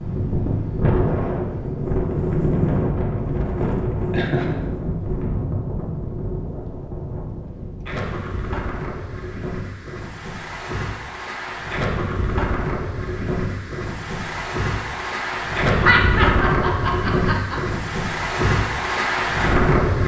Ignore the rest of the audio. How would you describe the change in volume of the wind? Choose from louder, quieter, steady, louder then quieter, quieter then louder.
quieter then louder.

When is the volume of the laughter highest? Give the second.
16 s.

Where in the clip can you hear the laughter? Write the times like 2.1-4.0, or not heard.
4.1-4.5, 15.7-17.6.